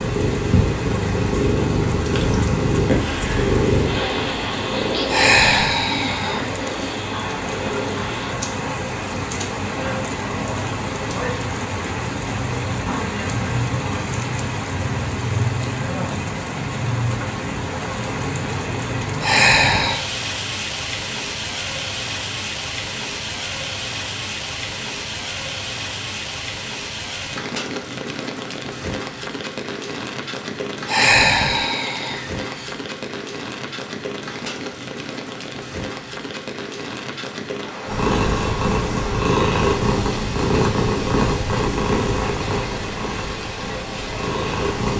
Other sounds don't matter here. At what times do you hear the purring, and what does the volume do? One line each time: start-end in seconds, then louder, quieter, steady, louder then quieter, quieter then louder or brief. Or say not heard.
0.0-8.4 quieter
37.9-44.9 quieter.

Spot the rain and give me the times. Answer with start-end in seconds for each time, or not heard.
0.0-44.9.